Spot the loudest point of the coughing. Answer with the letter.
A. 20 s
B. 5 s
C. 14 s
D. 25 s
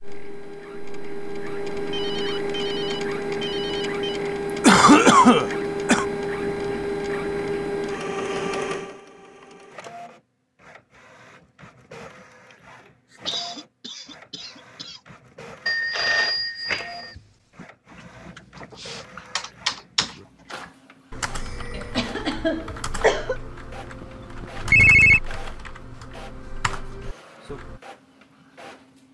B.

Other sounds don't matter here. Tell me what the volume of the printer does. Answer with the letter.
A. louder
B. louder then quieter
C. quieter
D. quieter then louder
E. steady
C.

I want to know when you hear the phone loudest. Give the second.
25 s.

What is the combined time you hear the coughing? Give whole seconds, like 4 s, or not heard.
5 s.